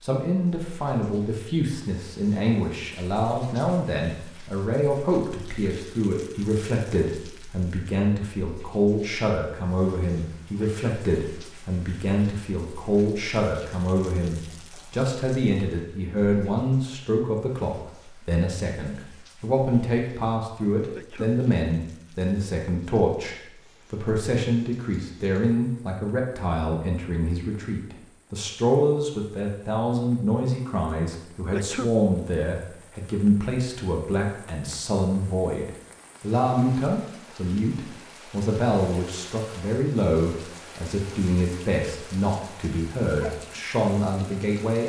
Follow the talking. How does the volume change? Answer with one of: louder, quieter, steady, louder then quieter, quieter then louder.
steady.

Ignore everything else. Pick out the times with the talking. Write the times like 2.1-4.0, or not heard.
0.0-44.8.